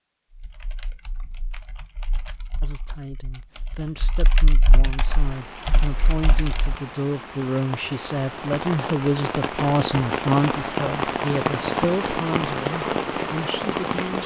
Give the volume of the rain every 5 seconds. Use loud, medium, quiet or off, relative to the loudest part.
off, medium, loud.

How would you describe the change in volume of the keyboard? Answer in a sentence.
The volume of the keyboard goes up.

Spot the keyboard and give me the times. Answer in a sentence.
You can hear the keyboard from 0.3 to 6.8 s.